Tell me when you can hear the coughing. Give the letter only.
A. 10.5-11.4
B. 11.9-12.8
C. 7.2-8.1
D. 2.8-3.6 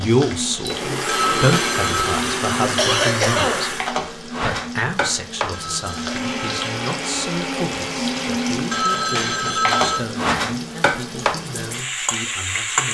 D.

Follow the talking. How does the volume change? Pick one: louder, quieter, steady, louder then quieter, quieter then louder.
quieter.